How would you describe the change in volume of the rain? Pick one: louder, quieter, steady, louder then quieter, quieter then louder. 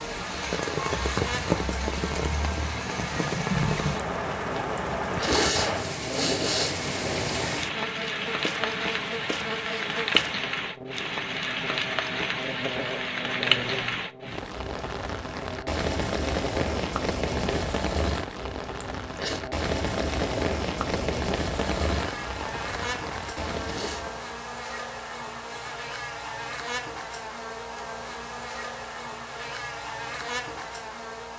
steady.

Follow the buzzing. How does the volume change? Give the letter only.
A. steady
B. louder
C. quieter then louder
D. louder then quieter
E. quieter
A.